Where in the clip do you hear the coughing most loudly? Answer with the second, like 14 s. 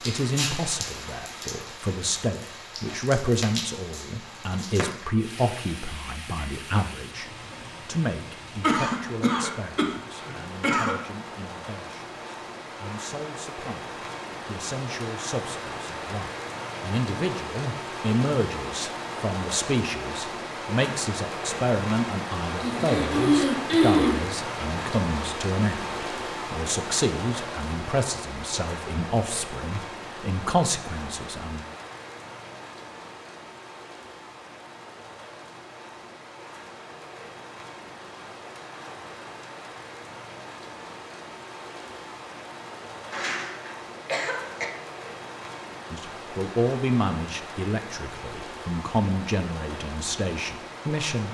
24 s.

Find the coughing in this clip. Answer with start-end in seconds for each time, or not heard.
8.6-10.9, 22.6-24.2, 43.1-44.6.